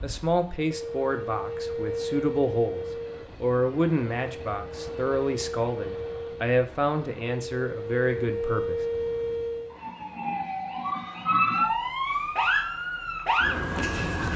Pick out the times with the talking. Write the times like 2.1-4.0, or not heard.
0.0-8.8.